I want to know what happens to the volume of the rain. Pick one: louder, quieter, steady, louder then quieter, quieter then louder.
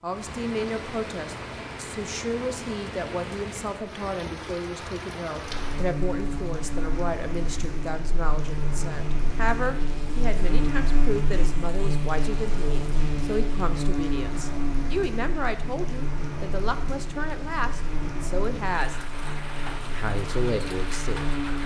steady.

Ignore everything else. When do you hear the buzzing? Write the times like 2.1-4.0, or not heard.
5.5-21.6.